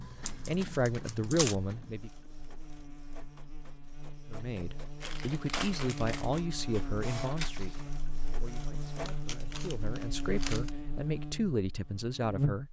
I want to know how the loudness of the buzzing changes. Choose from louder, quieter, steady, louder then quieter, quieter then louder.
louder.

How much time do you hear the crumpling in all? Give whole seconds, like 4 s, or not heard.
4 s.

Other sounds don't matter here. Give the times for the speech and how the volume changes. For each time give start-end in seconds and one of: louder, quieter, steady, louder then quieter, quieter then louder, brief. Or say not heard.
0.0-2.1 brief
4.3-12.6 quieter then louder.